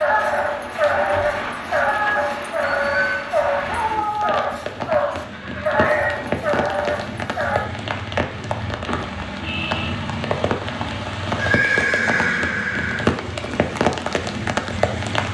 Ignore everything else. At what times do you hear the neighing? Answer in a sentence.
You can hear the neighing from 2.6 to 3.3 s, from 5.3 to 6.2 s and from 11.3 to 13.1 s.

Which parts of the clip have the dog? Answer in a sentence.
The dog can be heard from 0.0 to 7.7 s.